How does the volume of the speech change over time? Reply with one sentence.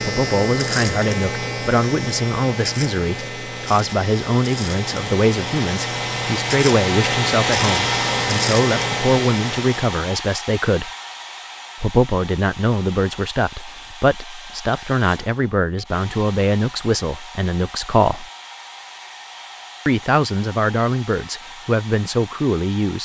The volume of the speech stays about the same.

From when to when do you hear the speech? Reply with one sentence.
The speech can be heard from 0.0 to 10.9 s, from 11.8 to 18.2 s and from 19.9 to 23.0 s.